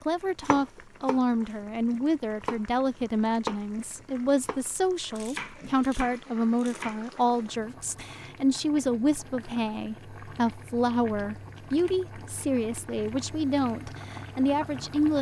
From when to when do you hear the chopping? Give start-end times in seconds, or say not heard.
0.4-7.8.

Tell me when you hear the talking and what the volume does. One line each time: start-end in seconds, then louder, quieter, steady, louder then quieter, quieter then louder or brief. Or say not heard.
0.0-15.1 steady.